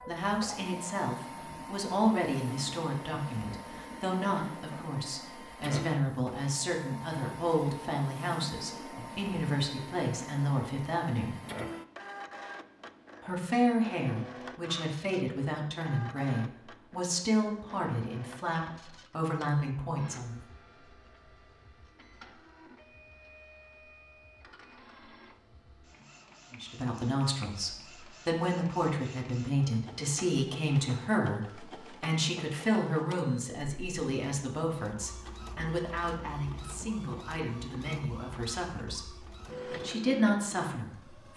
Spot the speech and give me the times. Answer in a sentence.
You can hear the speech from 0.1 to 11.3 s, from 13.2 to 20.4 s and from 26.5 to 41.3 s.